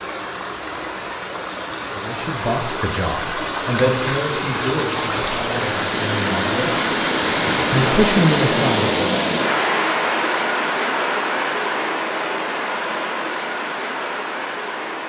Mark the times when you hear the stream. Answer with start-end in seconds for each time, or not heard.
0.0-15.0.